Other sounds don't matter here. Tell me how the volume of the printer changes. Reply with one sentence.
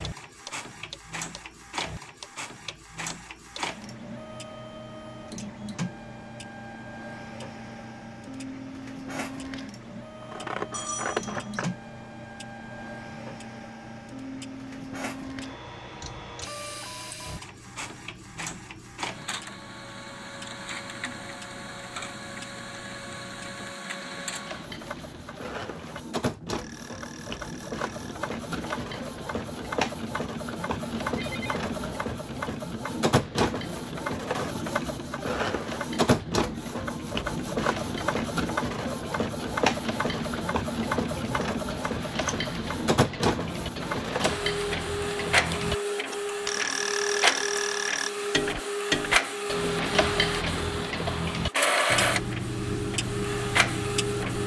The loudness of the printer goes up.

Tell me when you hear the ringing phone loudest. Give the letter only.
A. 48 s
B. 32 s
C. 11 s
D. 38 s
C.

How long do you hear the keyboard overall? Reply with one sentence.
The keyboard can't be heard in this clip.